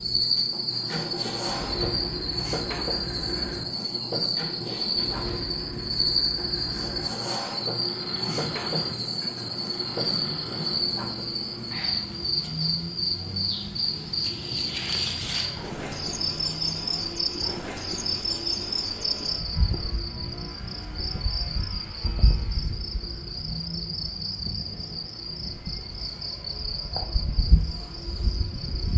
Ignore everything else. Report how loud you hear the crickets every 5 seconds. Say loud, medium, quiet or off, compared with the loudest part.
loud, loud, loud, loud, medium, medium.